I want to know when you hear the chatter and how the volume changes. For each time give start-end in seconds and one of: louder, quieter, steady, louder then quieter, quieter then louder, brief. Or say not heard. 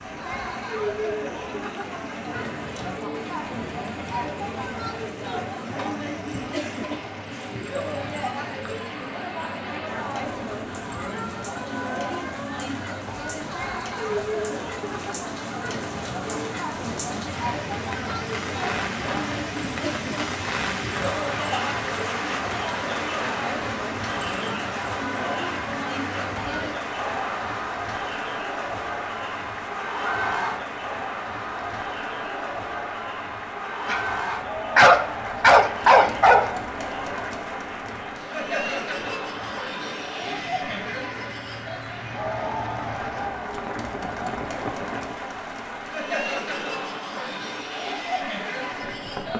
0.0-49.3 steady.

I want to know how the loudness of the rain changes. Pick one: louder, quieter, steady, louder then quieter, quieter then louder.
louder then quieter.